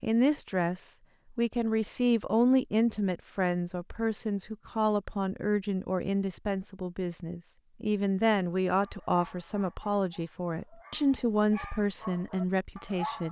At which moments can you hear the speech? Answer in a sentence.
You can hear the speech from 0.0 to 13.2 s.